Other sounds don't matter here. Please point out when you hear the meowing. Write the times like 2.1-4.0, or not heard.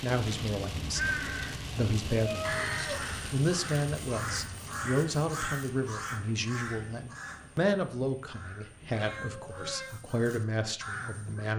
2.1-3.1, 8.9-10.0.